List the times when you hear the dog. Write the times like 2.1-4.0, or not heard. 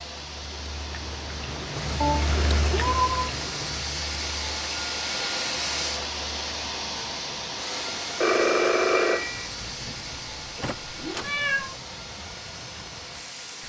not heard.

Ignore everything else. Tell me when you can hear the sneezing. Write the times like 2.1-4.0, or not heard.
not heard.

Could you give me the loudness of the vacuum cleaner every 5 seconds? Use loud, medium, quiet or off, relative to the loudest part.
loud, loud, medium.